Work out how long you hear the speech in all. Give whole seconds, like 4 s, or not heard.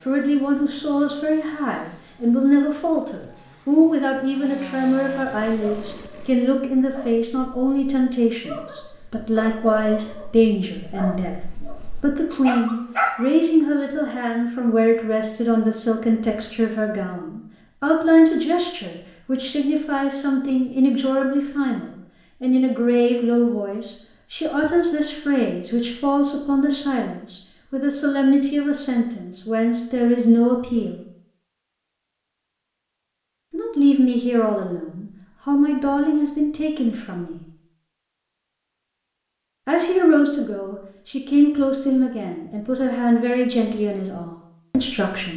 40 s.